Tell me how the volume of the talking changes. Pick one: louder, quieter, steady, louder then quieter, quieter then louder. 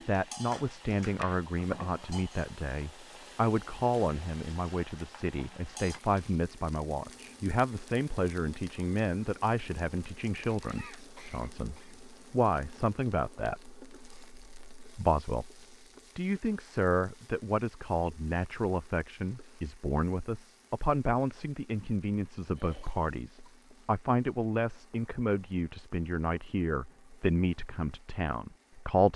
steady.